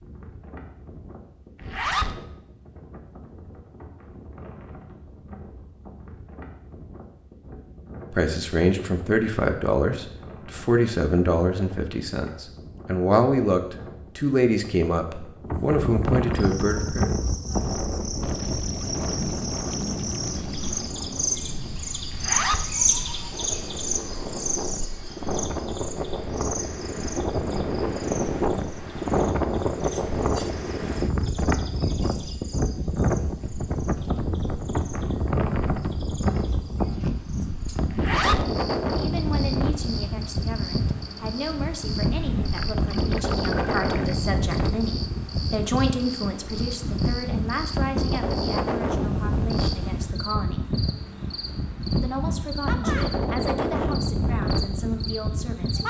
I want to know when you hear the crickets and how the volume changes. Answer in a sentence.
The crickets can be heard from 16.3 to 55.8 s, getting quieter then louder.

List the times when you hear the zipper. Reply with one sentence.
The zipper can be heard from 1.6 to 2.1 s, from 22.1 to 22.6 s and from 37.9 to 38.5 s.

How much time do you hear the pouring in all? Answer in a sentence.
You can hear the pouring for 5 seconds altogether.